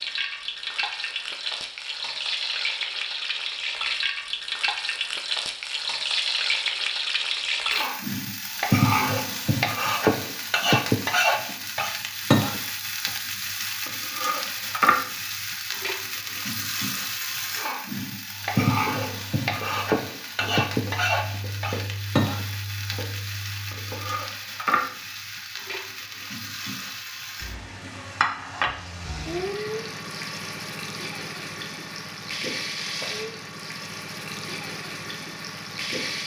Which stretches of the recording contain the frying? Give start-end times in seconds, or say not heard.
0.0-36.2.